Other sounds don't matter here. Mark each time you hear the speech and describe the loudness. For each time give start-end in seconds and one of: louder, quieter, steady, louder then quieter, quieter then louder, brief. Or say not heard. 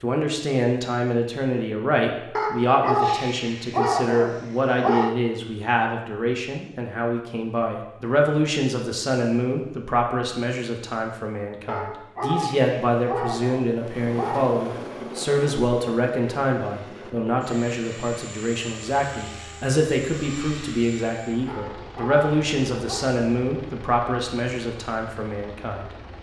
0.0-25.9 steady.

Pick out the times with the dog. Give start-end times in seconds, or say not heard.
2.4-5.2, 11.7-14.6, 21.4-23.1.